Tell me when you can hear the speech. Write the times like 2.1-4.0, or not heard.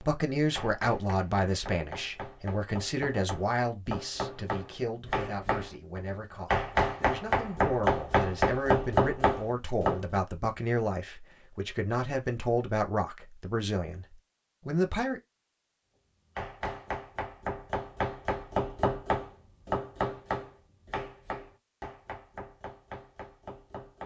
0.0-15.2.